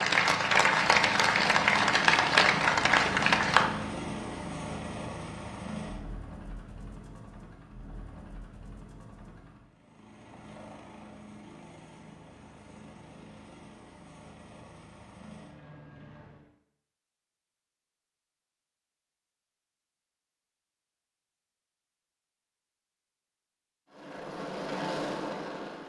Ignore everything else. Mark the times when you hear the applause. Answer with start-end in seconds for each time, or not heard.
0.0-3.6.